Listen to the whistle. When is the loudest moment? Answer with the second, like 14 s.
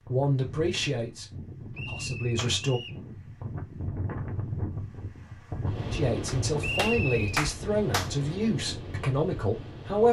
7 s.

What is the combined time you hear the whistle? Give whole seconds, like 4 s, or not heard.
2 s.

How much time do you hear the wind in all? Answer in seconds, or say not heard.
10 s.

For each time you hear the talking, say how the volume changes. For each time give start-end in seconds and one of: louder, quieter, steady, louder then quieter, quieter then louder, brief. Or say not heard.
0.0-2.8 brief
5.9-10.0 steady.